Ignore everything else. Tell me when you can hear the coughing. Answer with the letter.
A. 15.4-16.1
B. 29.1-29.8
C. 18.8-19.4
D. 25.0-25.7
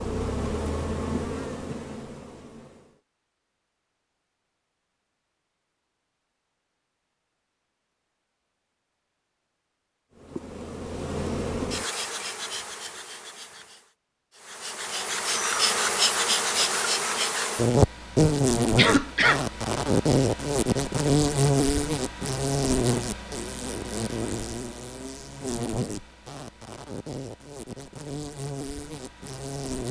C.